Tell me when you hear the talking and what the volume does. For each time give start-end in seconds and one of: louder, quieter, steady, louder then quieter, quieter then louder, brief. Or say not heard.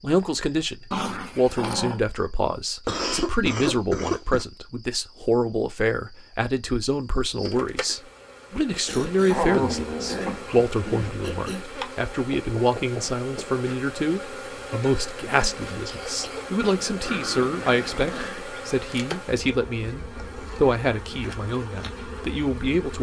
0.0-22.9 steady.